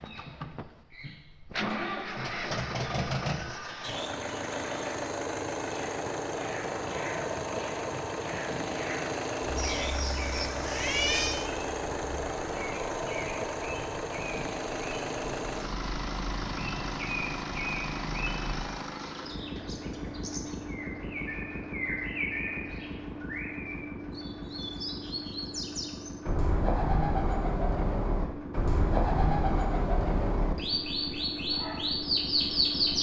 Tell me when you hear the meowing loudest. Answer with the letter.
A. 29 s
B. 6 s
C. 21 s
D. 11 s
D.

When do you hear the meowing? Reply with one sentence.
The meowing can be heard from 9.6 to 11.4 s.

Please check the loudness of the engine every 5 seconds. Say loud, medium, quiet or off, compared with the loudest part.
loud, loud, loud, loud, medium, medium, medium.